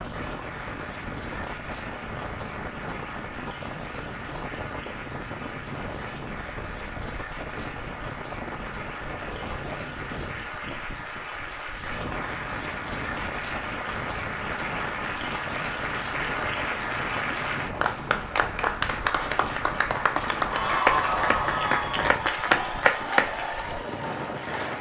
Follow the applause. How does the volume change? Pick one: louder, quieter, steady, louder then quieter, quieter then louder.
louder.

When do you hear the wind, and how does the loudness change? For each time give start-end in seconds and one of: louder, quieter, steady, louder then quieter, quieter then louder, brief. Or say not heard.
0.0-24.7 steady.